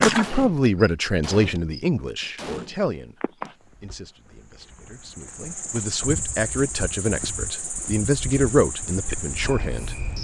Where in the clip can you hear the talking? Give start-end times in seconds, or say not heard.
0.0-9.9.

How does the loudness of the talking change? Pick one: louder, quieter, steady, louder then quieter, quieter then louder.
quieter then louder.